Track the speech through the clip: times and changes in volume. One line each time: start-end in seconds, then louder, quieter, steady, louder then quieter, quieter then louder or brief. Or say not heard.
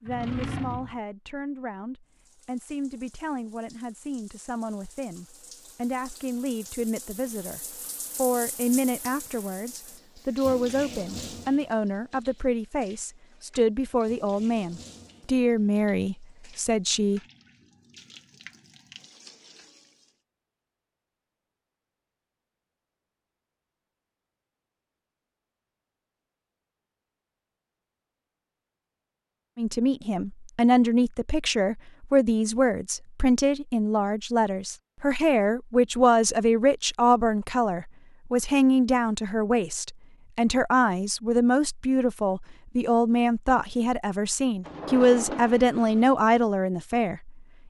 0.0-17.2 louder
29.6-47.5 steady.